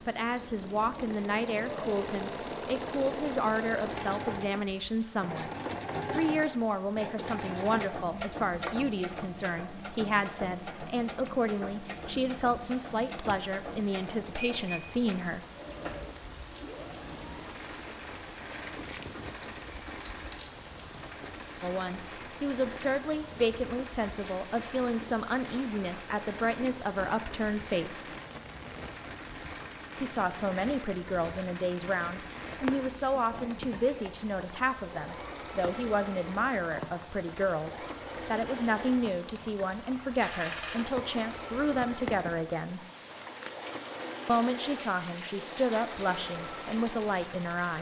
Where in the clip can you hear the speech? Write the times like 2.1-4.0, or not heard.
0.1-5.5, 6.1-15.4, 21.6-28.1, 30.0-42.9, 44.2-47.7.